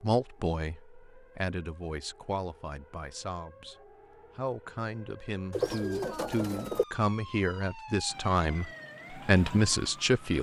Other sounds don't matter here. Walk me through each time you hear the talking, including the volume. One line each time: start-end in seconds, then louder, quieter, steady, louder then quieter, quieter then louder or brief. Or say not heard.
0.0-10.3 louder.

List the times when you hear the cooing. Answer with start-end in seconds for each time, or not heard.
5.5-6.8.